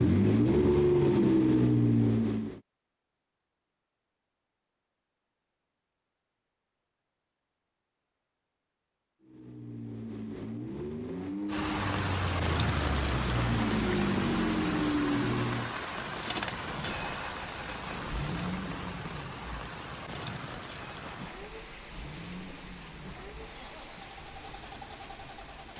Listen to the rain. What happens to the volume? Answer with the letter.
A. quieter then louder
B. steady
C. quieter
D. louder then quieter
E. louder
C.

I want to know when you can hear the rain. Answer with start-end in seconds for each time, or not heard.
11.4-25.7.